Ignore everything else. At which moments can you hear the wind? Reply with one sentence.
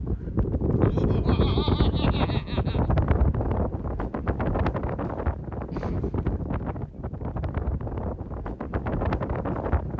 The wind can be heard from 0.0 to 9.9 s.